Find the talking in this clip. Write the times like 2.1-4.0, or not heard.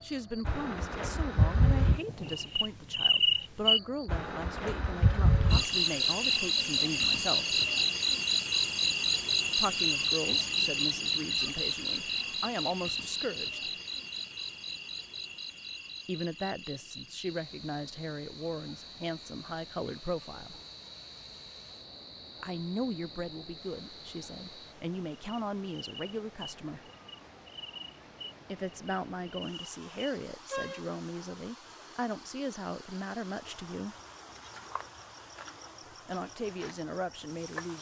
0.0-7.6, 9.6-13.7, 16.1-20.6, 22.4-26.8, 28.4-34.0, 36.0-37.7.